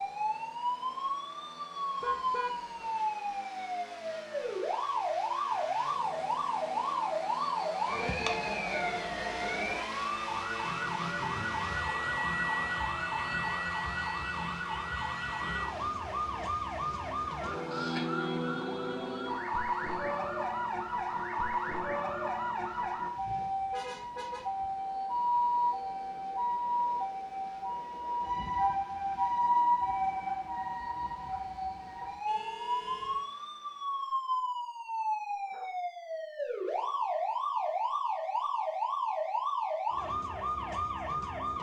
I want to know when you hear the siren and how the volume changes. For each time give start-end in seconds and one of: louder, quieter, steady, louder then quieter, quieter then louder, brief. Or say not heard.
0.0-41.5 steady.